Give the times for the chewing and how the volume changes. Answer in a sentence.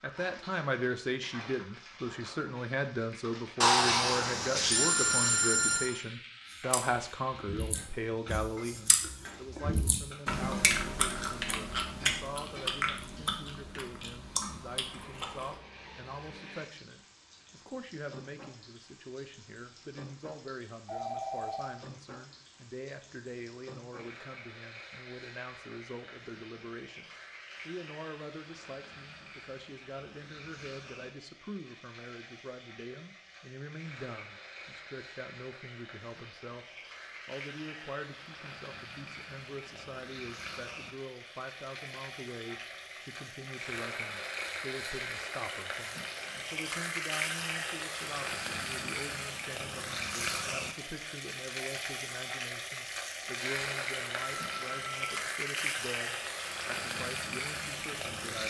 You can hear the chewing from 6.5 to 15.6 s, getting louder then quieter.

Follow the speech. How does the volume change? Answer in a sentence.
The loudness of the speech goes down.